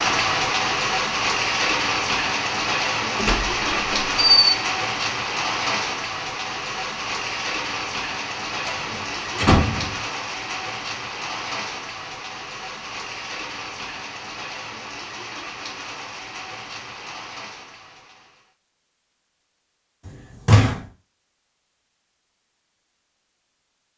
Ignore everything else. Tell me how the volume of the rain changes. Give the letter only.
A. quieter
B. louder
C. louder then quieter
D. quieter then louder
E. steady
A.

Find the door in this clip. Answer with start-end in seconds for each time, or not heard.
3.1-4.5, 8.7-9.9, 20.1-20.9.